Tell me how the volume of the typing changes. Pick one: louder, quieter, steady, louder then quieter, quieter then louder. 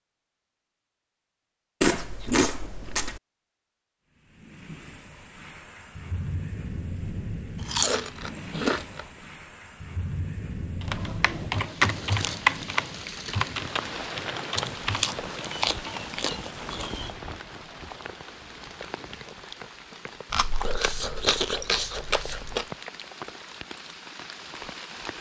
quieter.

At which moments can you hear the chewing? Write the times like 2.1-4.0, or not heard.
1.8-3.2, 7.5-9.1, 14.6-17.1, 20.3-22.6.